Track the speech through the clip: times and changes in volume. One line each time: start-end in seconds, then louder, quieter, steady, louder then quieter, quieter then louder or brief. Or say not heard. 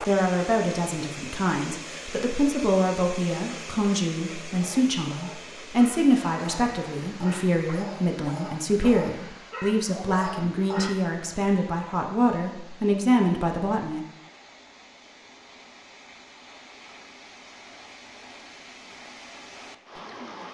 0.0-14.0 steady.